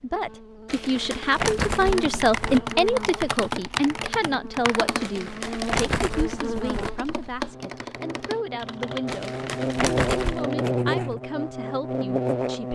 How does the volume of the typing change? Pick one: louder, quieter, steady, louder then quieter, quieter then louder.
quieter.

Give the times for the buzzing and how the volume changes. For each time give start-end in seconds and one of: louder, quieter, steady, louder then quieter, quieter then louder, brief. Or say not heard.
0.0-12.7 louder.